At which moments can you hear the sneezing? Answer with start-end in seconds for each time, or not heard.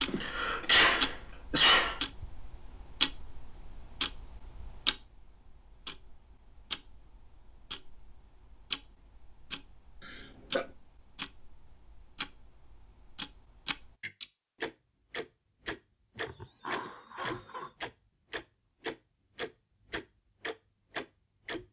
0.1-2.0, 10.1-10.7, 16.1-17.7.